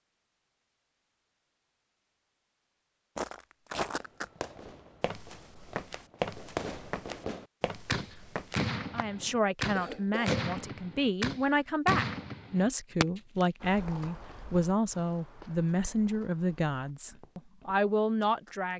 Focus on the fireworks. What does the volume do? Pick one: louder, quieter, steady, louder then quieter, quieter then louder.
louder.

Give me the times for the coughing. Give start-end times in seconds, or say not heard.
9.2-10.5.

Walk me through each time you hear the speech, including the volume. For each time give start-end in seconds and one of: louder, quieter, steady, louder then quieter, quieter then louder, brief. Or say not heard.
8.9-18.7 steady.